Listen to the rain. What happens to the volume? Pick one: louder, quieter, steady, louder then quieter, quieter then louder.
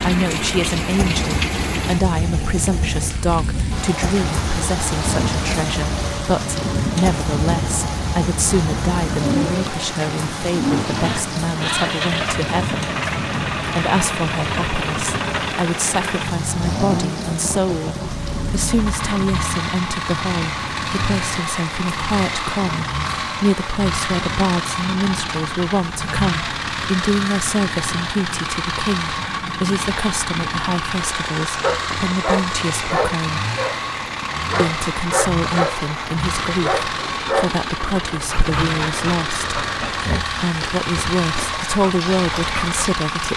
quieter.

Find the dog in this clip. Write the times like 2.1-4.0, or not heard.
31.6-33.8, 34.5-35.8, 36.6-37.5, 38.2-42.9.